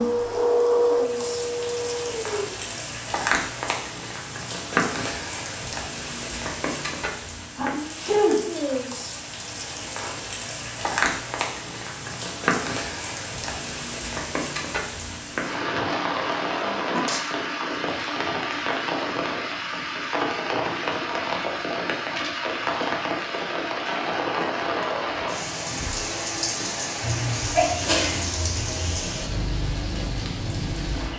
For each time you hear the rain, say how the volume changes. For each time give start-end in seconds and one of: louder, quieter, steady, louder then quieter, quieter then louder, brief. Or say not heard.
0.0-31.1 steady.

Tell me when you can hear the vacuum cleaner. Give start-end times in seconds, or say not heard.
0.0-2.6.